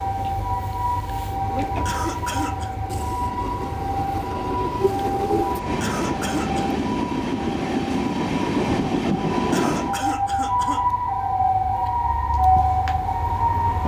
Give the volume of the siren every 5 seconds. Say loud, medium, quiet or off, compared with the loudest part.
medium, medium, loud.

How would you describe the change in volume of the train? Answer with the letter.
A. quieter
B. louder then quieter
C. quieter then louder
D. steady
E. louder
E.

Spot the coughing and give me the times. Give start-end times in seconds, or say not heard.
1.9-2.8, 5.8-6.8, 9.5-10.8.